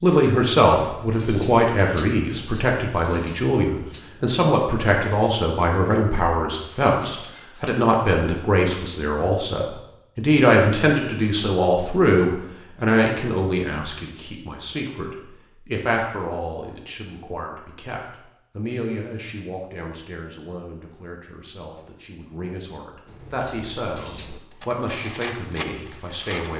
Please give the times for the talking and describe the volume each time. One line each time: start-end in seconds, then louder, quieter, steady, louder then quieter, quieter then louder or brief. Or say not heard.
0.0-26.5 quieter.